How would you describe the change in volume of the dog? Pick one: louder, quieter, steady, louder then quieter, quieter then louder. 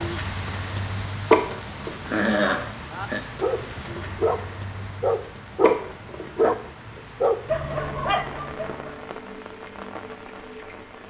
louder then quieter.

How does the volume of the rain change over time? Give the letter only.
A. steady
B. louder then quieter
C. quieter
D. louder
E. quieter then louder
C.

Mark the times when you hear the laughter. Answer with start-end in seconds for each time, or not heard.
1.3-3.2, 5.6-6.5.